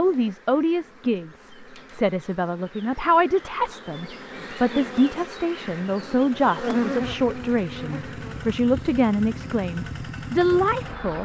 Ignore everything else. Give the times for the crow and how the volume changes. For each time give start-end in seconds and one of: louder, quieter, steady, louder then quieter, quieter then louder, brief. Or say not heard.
not heard.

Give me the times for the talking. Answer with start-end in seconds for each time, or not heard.
0.0-11.2.